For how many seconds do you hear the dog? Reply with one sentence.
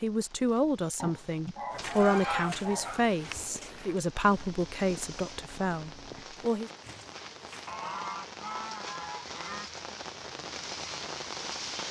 You can hear the dog for 2 seconds altogether.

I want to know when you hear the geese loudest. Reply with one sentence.
The loudest moment of the geese is at 2 seconds.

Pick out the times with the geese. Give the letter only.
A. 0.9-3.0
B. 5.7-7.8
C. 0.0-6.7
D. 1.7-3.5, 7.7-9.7
D.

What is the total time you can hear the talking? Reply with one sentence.
The talking can be heard for 7 seconds in total.